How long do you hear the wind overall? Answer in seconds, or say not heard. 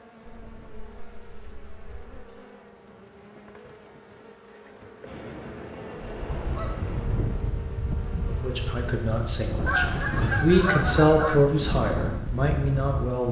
7 s.